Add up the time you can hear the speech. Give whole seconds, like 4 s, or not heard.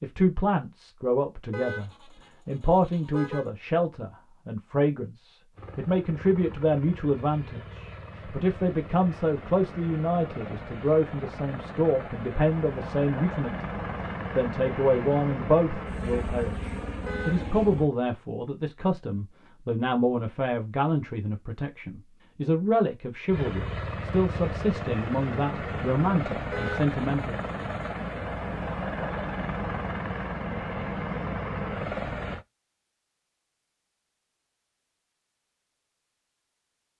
27 s.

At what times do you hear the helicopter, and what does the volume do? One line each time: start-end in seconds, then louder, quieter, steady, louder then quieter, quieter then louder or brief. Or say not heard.
5.5-17.9 louder
23.3-32.5 steady.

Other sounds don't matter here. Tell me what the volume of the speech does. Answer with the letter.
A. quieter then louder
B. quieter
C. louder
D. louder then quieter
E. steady
E.